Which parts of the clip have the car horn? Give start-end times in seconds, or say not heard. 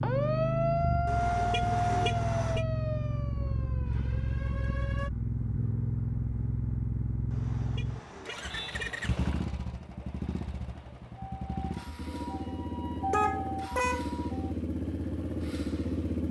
1.1-2.6, 7.3-9.3, 13.1-14.1.